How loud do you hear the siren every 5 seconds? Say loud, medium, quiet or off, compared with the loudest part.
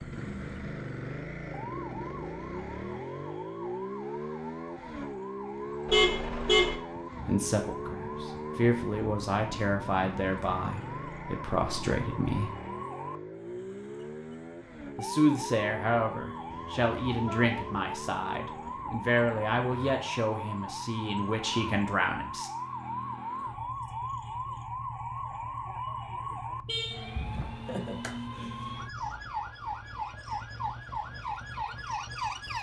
medium, medium, medium, loud, loud, loud, loud.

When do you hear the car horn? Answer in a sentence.
The car horn can be heard from 5.8 to 6.8 s, from 16.5 to 17.9 s and from 26.6 to 27.1 s.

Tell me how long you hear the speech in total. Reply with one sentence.
The speech can be heard for 13 seconds in total.